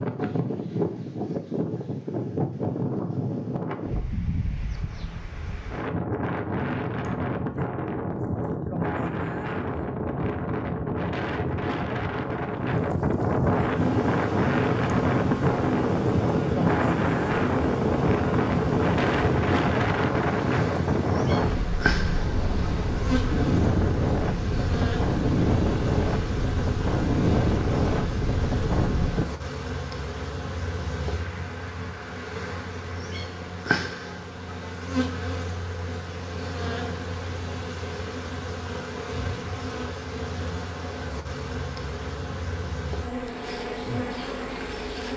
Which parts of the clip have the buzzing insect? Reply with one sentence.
The buzzing insect can be heard from 13.6 to 45.1 s.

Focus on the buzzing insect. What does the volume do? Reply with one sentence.
The volume of the buzzing insect stays about the same.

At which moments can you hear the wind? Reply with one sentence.
The wind can be heard from 0.0 to 29.2 s.